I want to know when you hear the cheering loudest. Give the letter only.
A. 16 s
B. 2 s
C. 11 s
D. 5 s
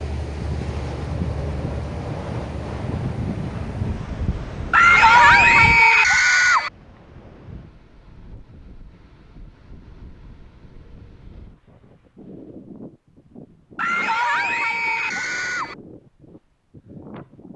D.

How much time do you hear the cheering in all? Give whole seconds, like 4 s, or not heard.
4 s.